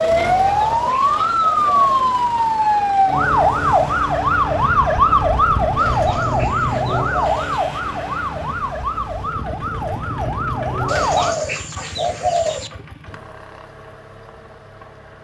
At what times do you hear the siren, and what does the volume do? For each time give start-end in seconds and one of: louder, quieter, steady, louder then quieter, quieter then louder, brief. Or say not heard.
0.0-11.3 quieter.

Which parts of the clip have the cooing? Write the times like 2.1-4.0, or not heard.
0.5-1.9, 5.8-7.6, 10.8-12.7.